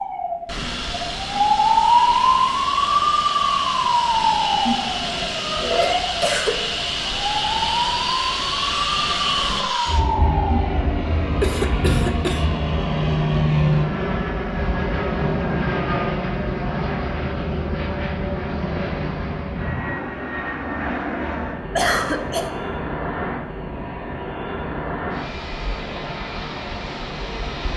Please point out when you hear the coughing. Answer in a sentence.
You can hear the coughing from 5.8 to 6.6 s, from 11.4 to 12.6 s and from 21.8 to 22.5 s.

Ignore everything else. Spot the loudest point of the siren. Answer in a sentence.
The volume of the siren peaks at 2 seconds.